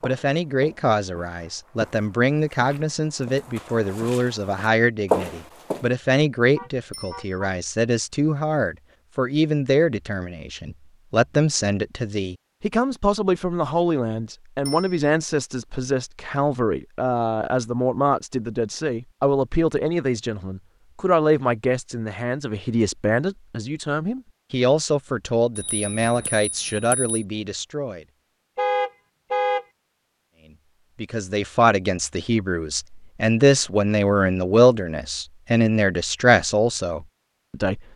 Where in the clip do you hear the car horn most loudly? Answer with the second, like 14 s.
29 s.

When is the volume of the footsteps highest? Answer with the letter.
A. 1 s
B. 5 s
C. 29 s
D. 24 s
B.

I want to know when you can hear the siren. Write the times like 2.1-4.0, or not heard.
not heard.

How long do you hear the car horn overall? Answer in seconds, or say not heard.
2 s.